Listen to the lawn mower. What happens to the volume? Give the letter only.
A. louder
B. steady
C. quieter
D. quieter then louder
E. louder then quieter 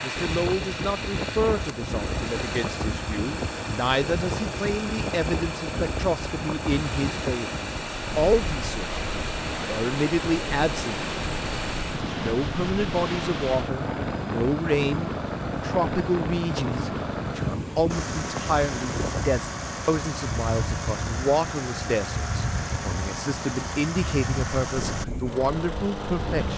B.